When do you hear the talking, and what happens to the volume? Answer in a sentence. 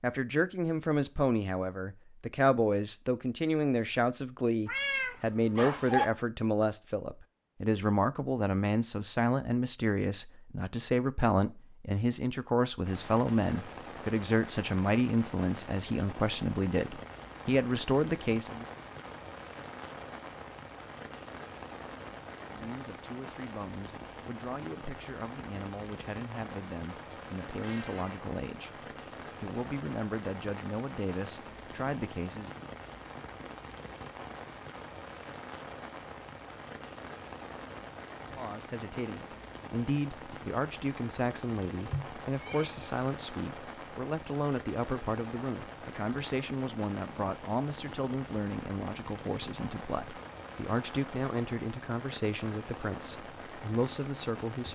The talking can be heard from 0.0 to 18.6 s, at a steady volume; from 22.4 to 32.5 s, getting louder; and from 38.4 to 54.7 s, at a steady volume.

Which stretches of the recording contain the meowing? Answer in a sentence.
The meowing can be heard from 4.7 to 6.0 s, from 27.1 to 28.2 s and from 41.8 to 42.9 s.